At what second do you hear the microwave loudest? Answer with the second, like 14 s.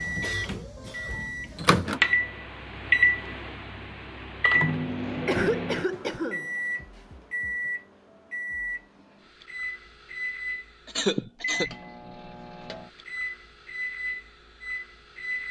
3 s.